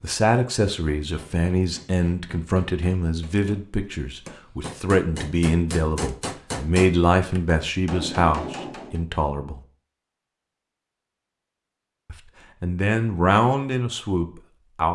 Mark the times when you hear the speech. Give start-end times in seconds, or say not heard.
0.0-9.6, 12.1-14.9.